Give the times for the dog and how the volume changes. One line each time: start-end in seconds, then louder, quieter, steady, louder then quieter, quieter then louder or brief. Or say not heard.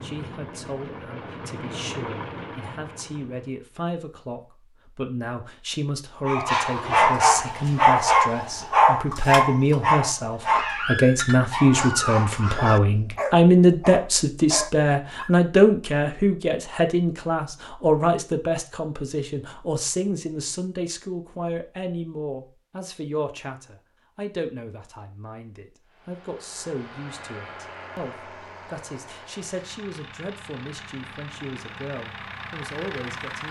6.2-15.3 quieter.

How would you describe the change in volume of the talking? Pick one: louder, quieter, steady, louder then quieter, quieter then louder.
louder then quieter.